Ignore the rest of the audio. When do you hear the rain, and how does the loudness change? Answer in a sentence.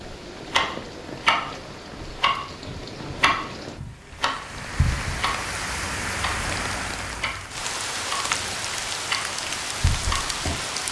The rain can be heard from 0.0 to 10.8 s, getting louder.